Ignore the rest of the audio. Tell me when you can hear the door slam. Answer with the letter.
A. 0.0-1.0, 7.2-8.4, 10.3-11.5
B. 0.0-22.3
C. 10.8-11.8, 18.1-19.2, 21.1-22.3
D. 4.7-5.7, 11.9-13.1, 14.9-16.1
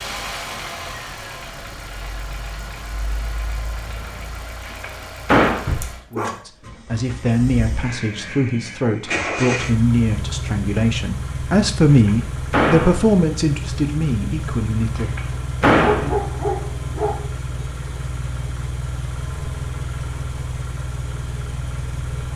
D.